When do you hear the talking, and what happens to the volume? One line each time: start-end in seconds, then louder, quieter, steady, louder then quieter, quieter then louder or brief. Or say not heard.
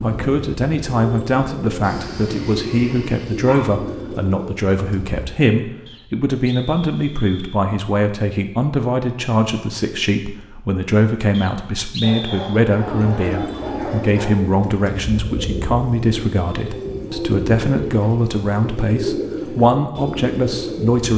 0.0-21.1 steady.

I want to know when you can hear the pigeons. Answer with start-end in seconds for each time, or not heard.
0.0-5.2, 12.8-21.1.